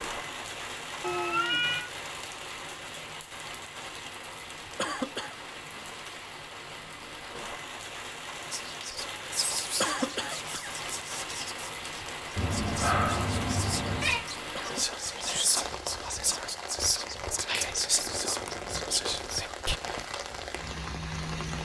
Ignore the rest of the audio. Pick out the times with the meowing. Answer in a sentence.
The meowing can be heard from 1.0 to 1.9 s and from 12.3 to 14.2 s.